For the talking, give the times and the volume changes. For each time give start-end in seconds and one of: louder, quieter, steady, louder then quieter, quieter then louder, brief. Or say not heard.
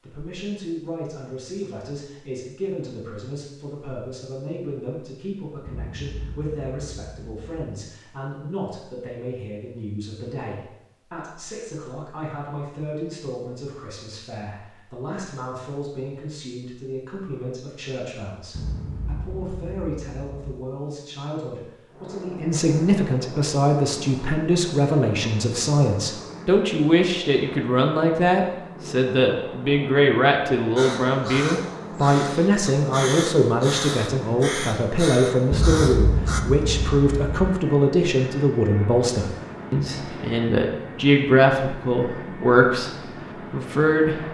0.0-44.2 louder.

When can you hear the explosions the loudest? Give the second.
36 s.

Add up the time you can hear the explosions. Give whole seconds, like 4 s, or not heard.
6 s.